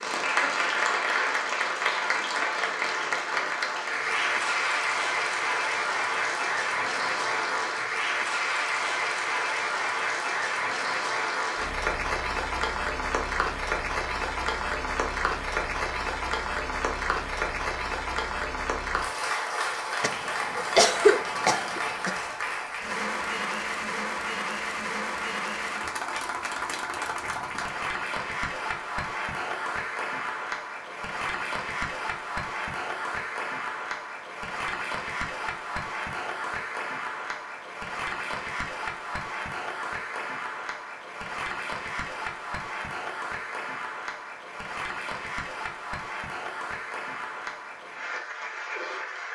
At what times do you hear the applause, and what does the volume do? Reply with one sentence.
You can hear the applause from 0.0 to 49.3 s, getting quieter.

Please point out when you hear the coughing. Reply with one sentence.
The coughing can be heard from 20.0 to 22.1 s.